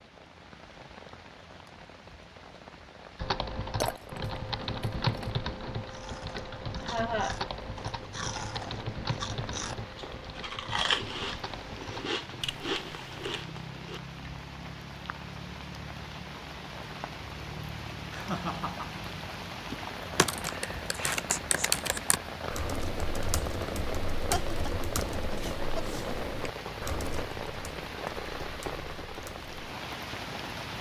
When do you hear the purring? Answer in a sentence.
You can't hear the purring here.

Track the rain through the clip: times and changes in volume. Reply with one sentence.
The rain can be heard from 0.0 to 30.7 s, getting louder.